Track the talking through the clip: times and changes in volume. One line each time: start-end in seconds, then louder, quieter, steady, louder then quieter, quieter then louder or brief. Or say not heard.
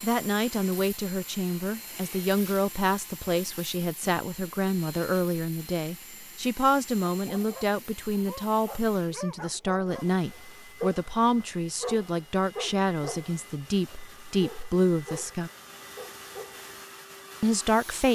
0.0-15.5 steady
17.4-18.1 brief.